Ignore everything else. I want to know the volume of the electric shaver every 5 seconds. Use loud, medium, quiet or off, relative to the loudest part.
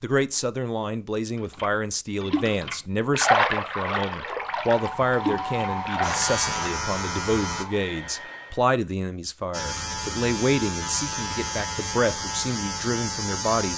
off, loud, loud.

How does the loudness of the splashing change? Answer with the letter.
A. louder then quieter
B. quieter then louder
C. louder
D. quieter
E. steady
A.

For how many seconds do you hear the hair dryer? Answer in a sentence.
You can hear the hair dryer for 4 seconds altogether.